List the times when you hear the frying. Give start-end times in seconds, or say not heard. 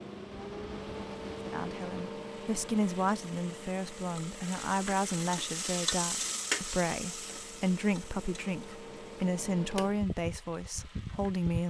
0.0-11.6.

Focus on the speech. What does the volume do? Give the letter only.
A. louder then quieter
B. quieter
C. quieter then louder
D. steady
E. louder
D.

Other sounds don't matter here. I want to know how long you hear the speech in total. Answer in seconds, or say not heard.
10 s.